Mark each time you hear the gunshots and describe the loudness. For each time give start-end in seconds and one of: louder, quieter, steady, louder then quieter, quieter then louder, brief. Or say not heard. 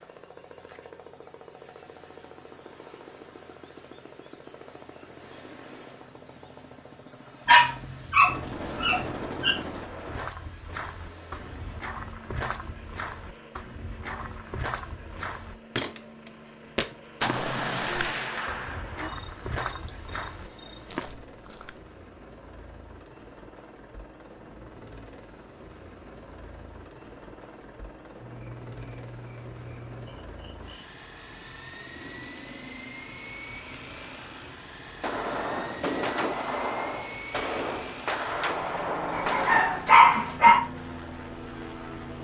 8.2-10.3 brief
17.2-19.1 brief
35.0-39.9 steady.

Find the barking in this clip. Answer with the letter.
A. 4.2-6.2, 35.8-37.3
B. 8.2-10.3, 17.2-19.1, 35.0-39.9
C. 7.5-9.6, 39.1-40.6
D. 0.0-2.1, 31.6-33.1
C.